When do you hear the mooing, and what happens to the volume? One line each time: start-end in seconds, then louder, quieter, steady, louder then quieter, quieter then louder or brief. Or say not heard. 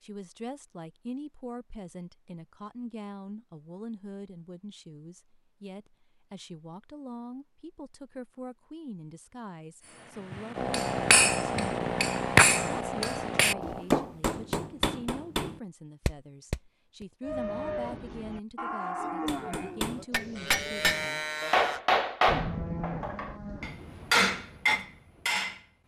17.2-23.8 steady.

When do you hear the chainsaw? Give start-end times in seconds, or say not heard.
10.6-13.8.